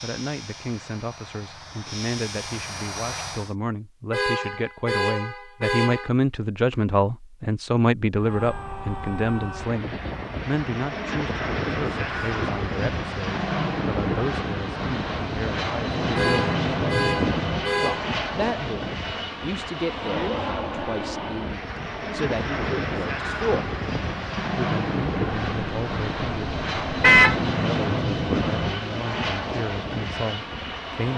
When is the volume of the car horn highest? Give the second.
27 s.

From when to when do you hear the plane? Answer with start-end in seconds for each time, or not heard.
0.0-3.5, 8.2-31.1.